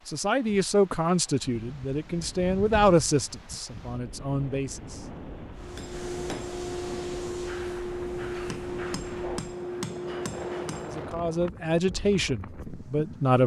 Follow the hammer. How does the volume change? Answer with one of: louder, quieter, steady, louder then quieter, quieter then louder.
steady.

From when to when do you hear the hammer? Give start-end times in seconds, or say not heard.
5.5-11.2.